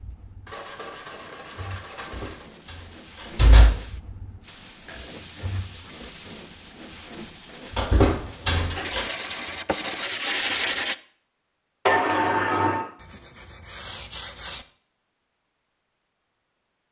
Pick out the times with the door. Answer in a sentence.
The door can be heard from 2.1 to 3.7 s, from 7.8 to 9.1 s and from 11.8 to 12.8 s.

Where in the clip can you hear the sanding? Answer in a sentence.
You can hear the sanding from 0.5 to 2.5 s, from 4.8 to 6.5 s, from 8.8 to 10.9 s and from 12.9 to 14.7 s.